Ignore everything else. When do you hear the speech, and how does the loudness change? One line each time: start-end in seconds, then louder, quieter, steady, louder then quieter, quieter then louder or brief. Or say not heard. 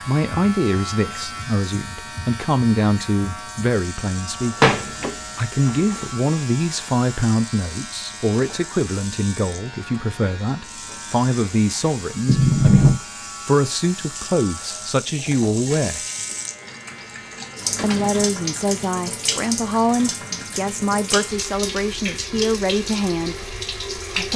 0.0-16.1 steady
17.8-24.3 steady.